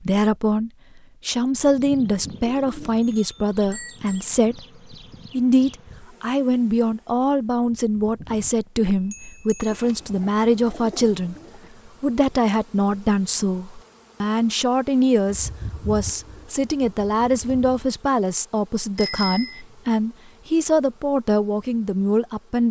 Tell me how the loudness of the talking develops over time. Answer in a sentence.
The loudness of the talking stays about the same.